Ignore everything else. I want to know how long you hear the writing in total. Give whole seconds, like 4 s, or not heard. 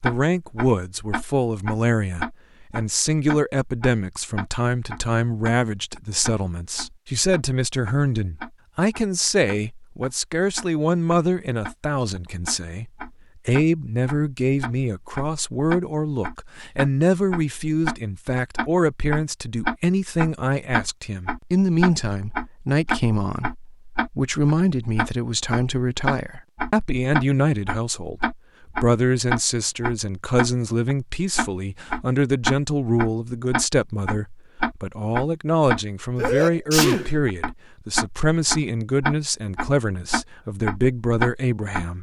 not heard.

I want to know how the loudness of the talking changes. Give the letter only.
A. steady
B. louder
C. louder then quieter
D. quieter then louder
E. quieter
A.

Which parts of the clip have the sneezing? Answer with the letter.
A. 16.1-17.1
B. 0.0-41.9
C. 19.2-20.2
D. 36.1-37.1
D.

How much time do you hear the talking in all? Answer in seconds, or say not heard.
42 s.